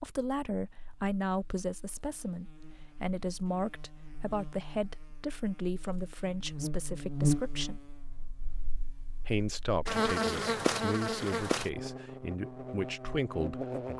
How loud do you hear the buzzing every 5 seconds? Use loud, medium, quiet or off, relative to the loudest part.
quiet, loud, loud.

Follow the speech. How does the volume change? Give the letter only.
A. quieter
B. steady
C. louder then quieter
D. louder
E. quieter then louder
B.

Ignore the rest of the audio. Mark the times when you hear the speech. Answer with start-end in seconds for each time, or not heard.
0.0-7.8, 9.2-13.9.